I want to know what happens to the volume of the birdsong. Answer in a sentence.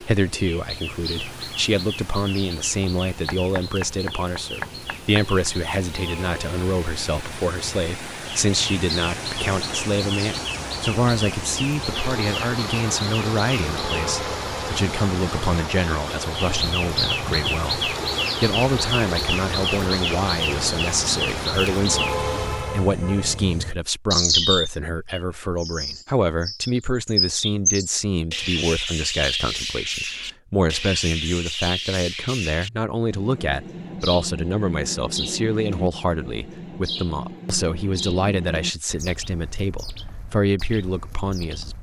The loudness of the birdsong goes up, then down.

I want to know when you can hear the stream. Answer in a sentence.
The stream can be heard from 0.0 to 22.9 s.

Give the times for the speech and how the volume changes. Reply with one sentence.
The speech can be heard from 0.0 to 41.7 s, at a steady volume.